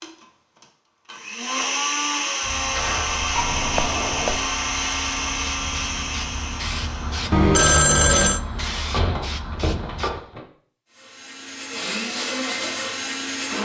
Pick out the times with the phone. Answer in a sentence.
You can hear the phone from 3.4 to 4.4 s and from 7.3 to 8.4 s.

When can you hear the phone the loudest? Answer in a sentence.
The volume of the phone peaks at 8 seconds.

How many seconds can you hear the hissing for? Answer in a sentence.
You can hear the hissing for 8 seconds altogether.